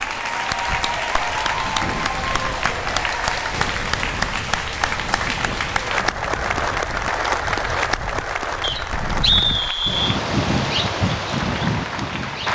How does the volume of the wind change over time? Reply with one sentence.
The loudness of the wind goes up.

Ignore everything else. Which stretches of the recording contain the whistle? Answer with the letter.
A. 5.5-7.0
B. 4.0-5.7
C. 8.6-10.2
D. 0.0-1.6
C.